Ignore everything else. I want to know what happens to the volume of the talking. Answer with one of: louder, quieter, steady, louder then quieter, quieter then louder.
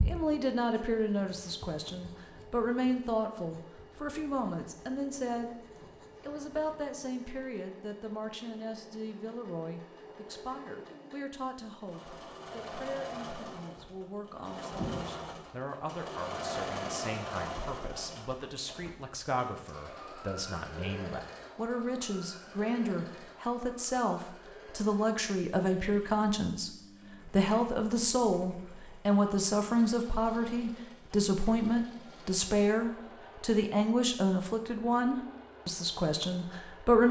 quieter then louder.